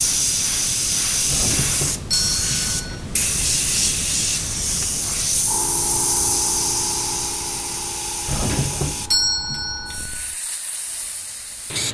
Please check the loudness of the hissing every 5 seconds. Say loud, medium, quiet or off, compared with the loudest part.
loud, loud, medium.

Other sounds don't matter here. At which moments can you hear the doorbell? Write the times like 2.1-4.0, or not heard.
1.2-3.0, 8.2-10.2.